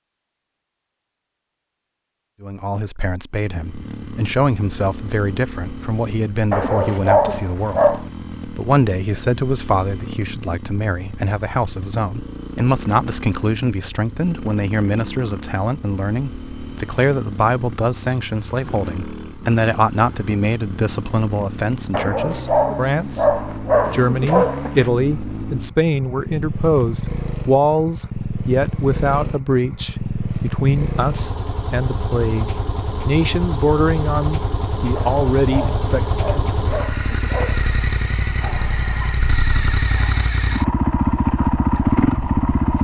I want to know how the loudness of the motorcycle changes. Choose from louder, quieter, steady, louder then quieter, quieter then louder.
louder.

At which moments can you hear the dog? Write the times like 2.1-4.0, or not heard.
6.5-8.1, 21.9-24.9, 35.0-37.7.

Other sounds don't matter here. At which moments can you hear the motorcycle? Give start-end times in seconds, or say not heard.
3.5-42.7.